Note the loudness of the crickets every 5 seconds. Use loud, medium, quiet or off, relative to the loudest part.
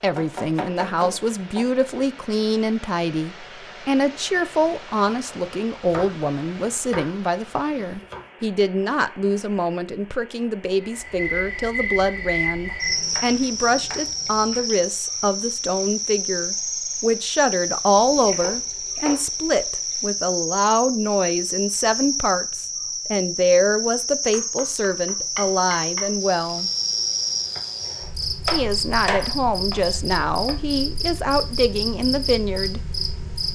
off, off, loud, loud, loud, loud, loud.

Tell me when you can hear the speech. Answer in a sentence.
The speech can be heard from 0.0 to 26.7 s and from 28.5 to 32.8 s.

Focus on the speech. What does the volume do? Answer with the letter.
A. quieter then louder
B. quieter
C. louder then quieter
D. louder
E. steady
E.